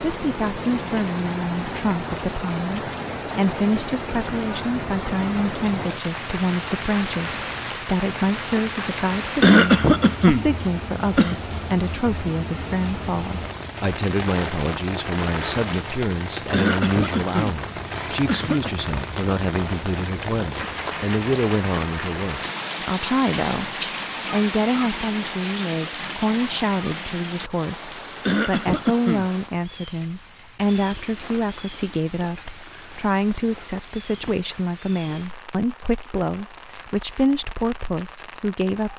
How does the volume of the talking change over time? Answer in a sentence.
The volume of the talking stays about the same.